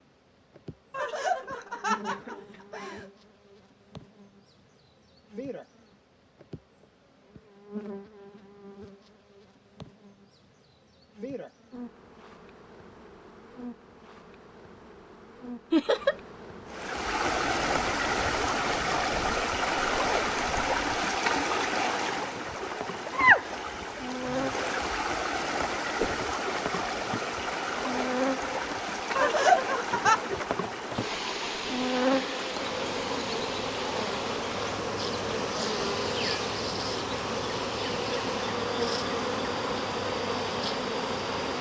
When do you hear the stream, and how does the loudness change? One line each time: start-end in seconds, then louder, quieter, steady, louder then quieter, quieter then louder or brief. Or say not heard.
16.6-41.5 quieter.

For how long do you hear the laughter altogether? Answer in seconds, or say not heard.
4 s.